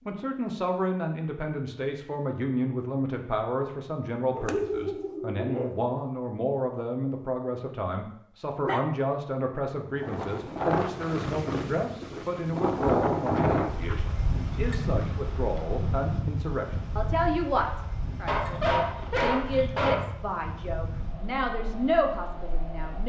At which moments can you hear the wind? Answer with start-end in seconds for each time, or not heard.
9.9-23.0.